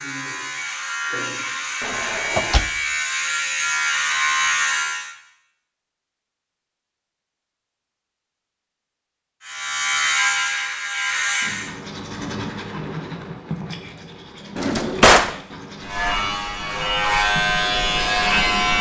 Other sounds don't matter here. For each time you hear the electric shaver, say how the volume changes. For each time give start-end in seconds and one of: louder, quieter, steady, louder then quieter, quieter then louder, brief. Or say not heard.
0.0-5.1 louder
9.4-11.7 brief
15.8-18.7 brief.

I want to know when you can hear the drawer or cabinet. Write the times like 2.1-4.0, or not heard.
1.8-2.7, 14.6-15.3.